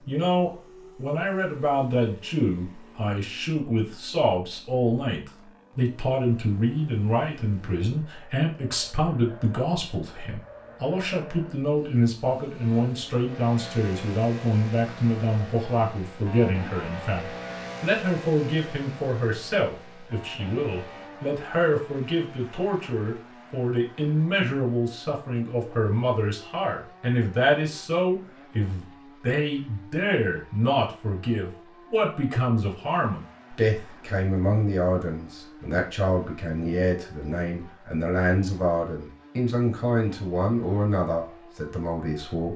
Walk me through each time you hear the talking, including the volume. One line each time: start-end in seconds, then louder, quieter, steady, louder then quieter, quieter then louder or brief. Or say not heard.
0.1-42.5 steady.